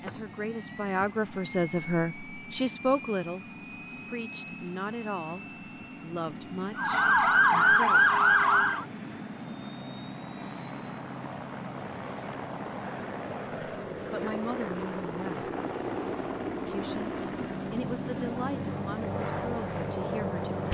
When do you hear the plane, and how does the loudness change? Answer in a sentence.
You can hear the plane from 0.0 to 20.7 s, getting louder.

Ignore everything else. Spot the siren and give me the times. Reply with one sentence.
You can hear the siren from 6.8 to 8.8 s.